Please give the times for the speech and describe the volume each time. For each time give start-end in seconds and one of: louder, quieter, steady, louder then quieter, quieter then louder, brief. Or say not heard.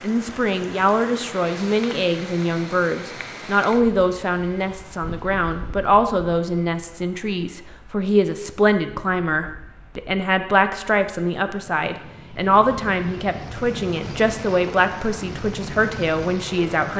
0.0-16.9 steady.